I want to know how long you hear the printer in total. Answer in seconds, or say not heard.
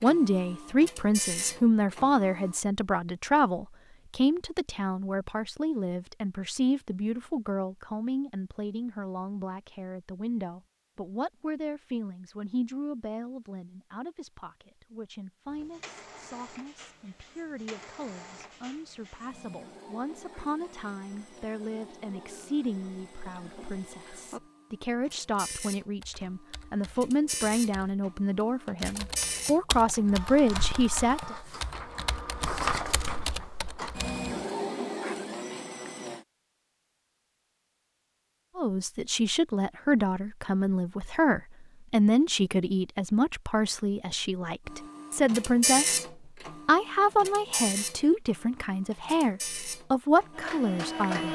30 s.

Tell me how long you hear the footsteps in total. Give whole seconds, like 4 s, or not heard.
not heard.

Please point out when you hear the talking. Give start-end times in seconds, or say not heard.
0.0-31.4, 38.5-46.0, 46.6-51.2.